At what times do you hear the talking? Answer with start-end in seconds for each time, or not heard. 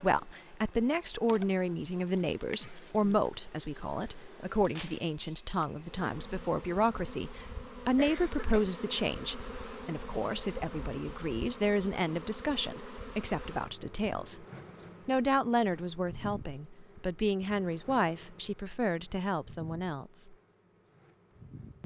0.0-14.4, 15.1-20.4.